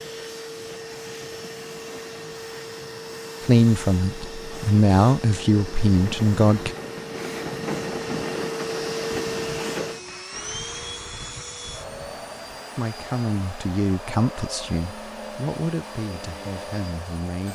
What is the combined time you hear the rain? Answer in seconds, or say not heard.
13 s.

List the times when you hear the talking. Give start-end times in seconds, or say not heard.
3.4-6.8, 12.8-17.5.